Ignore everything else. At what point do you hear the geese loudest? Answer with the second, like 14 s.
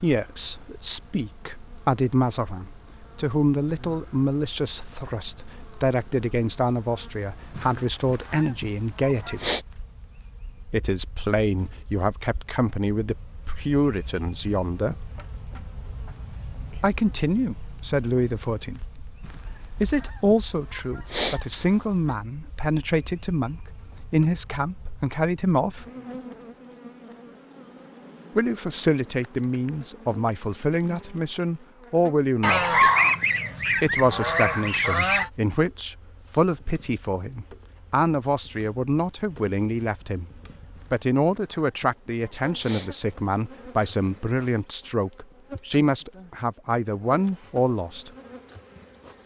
33 s.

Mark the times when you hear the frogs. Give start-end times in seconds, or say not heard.
not heard.